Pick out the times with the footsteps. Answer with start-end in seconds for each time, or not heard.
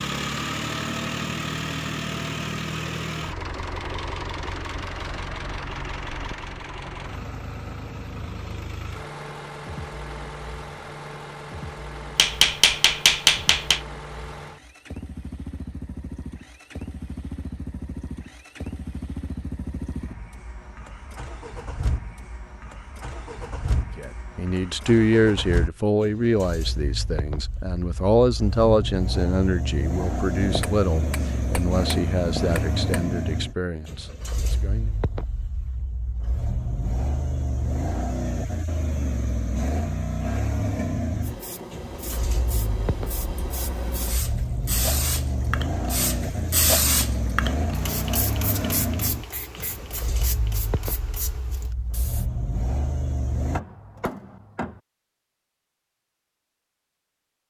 not heard.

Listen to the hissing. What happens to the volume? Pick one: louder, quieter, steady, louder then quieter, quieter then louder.
louder then quieter.